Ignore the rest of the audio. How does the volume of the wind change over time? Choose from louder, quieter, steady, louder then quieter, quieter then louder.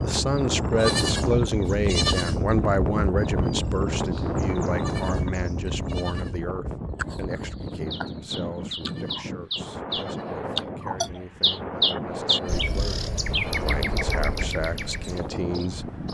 quieter.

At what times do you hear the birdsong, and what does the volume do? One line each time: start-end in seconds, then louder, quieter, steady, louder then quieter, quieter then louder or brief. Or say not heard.
0.0-16.0 louder then quieter.